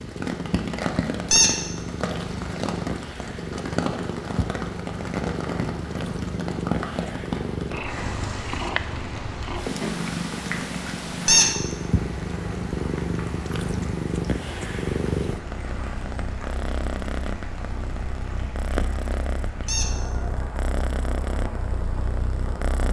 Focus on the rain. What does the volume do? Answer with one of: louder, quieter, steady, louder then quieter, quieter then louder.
quieter.